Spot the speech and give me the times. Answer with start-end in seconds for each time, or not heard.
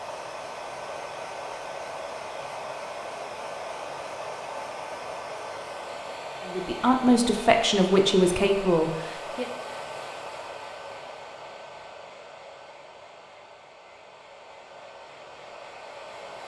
6.5-9.4.